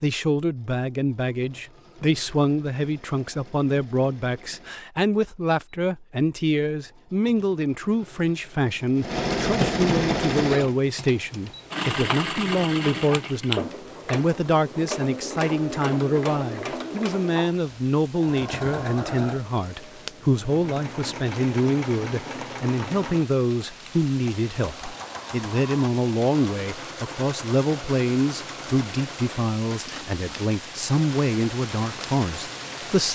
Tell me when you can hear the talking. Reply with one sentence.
The talking can be heard from 0.0 to 33.0 s.